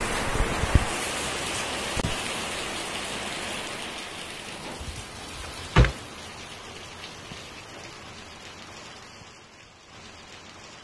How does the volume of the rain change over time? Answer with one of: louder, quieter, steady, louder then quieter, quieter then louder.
quieter.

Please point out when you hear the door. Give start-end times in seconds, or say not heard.
4.8-6.0.